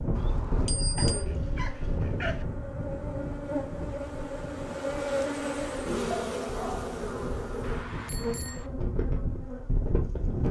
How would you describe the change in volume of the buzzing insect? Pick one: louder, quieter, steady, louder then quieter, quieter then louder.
louder then quieter.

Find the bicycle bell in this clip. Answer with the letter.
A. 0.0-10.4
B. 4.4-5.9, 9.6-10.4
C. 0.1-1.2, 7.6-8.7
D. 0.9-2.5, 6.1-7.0
C.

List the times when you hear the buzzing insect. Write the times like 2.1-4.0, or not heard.
0.0-10.4.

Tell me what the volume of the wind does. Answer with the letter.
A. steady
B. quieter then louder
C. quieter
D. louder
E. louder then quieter
B.